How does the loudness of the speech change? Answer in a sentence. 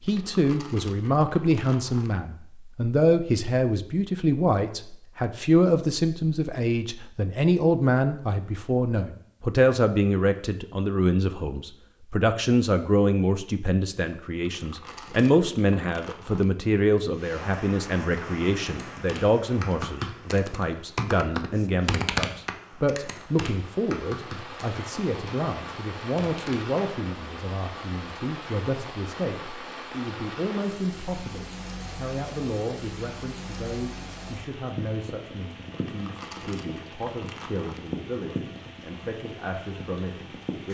The loudness of the speech goes down.